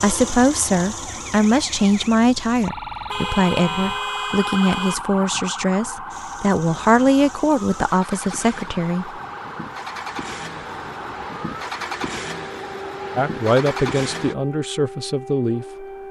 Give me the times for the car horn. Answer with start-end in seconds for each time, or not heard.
3.0-5.0.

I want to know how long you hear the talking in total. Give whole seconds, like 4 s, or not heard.
12 s.